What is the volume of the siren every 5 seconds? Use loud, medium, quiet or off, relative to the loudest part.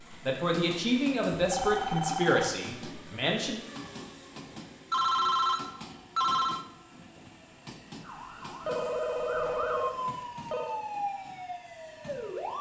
off, loud, loud.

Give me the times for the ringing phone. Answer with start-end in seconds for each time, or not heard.
1.4-2.5, 4.9-6.7, 8.7-10.8.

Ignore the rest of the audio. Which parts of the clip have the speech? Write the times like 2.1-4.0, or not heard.
0.1-3.6.